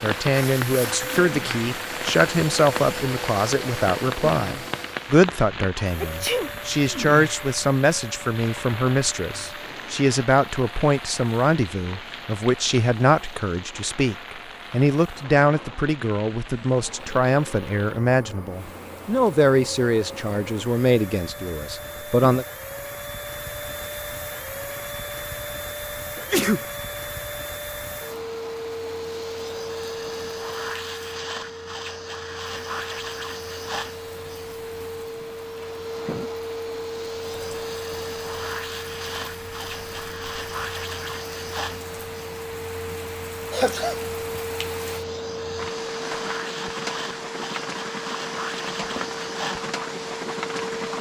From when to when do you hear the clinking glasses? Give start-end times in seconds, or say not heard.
not heard.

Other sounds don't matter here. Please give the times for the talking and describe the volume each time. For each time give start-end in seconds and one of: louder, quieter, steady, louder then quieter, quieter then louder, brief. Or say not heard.
0.0-22.4 steady.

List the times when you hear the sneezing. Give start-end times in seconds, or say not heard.
6.0-6.5, 26.1-26.6, 43.5-44.0.